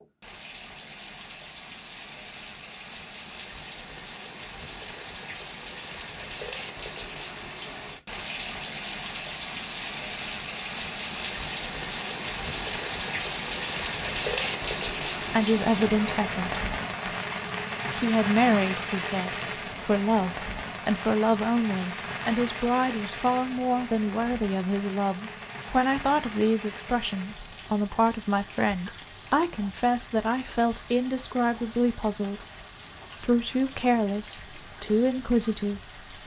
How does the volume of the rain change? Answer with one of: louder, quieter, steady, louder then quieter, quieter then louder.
louder then quieter.